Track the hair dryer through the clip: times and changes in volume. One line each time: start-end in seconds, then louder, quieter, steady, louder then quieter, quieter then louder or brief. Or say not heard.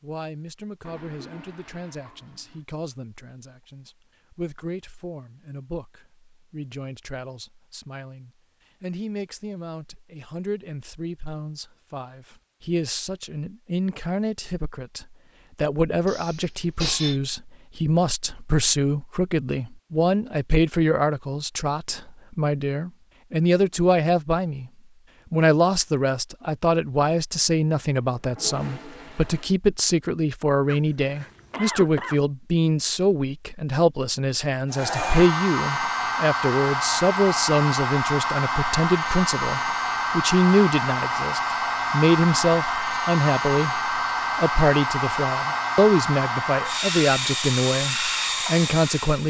34.7-49.2 steady.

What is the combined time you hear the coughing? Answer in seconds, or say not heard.
3 s.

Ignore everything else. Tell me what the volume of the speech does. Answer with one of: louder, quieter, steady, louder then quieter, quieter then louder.
louder.